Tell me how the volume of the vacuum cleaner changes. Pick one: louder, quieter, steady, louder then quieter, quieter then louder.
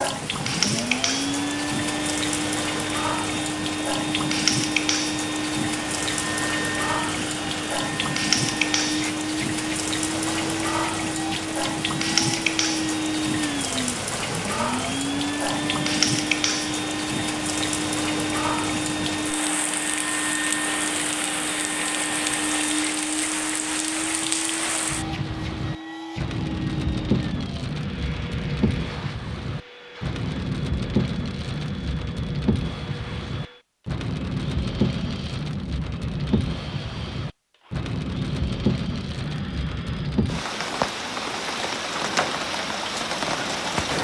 quieter.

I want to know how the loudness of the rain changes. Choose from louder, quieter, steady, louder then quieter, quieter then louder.
steady.